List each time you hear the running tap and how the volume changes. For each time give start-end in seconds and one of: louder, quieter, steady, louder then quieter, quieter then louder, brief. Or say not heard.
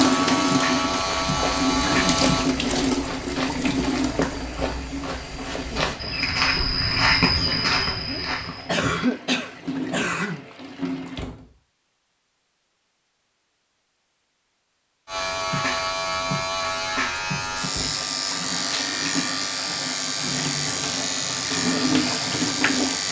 0.0-11.2 quieter
17.6-23.0 louder.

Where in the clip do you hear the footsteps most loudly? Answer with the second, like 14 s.
7 s.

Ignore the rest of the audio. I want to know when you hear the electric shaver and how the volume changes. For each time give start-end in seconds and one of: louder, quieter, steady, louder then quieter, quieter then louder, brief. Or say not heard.
0.0-2.5 brief
15.1-23.0 steady.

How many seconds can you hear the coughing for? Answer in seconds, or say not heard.
2 s.